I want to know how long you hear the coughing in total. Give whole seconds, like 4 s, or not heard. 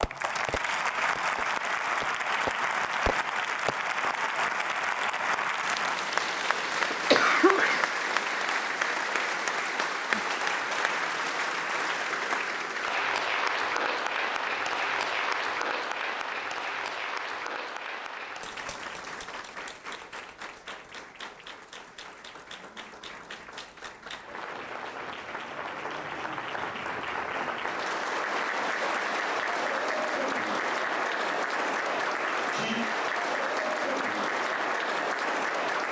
2 s.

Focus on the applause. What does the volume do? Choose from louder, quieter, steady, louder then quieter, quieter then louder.
quieter then louder.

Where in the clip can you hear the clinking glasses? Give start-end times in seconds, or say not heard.
not heard.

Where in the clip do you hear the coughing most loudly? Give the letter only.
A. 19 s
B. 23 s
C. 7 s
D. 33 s
C.